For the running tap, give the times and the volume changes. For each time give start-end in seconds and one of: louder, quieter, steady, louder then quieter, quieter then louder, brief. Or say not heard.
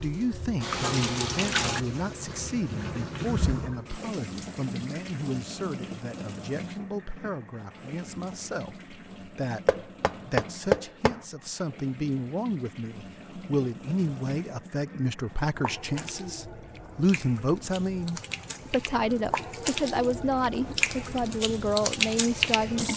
0.0-22.9 quieter then louder.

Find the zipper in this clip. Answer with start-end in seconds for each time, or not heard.
not heard.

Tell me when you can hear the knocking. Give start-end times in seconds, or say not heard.
9.7-11.2.